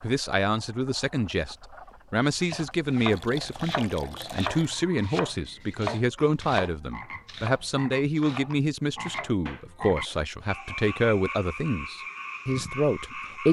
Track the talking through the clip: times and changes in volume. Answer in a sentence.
You can hear the talking from 0.0 to 13.4 s, at a steady volume.